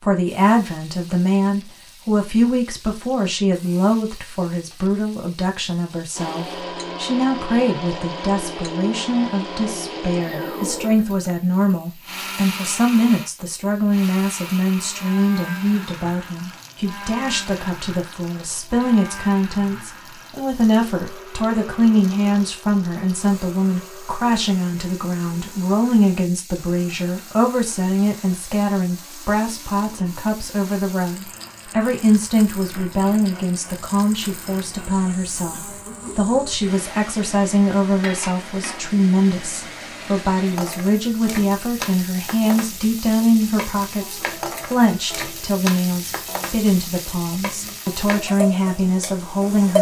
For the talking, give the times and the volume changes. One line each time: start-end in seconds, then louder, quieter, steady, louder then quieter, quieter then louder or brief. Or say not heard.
0.0-49.7 steady.